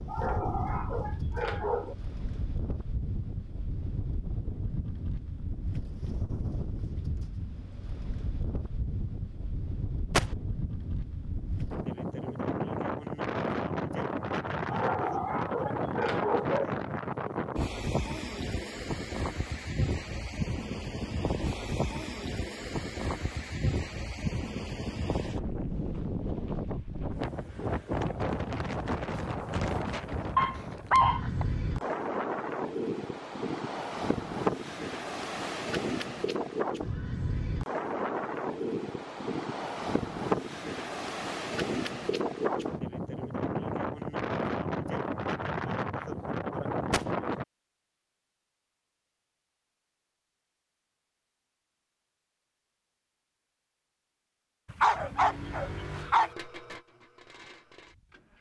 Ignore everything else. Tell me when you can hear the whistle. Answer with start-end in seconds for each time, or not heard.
not heard.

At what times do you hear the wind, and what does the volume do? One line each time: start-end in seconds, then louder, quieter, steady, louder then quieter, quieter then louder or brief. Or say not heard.
0.0-47.5 louder.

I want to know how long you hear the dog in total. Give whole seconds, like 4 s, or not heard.
7 s.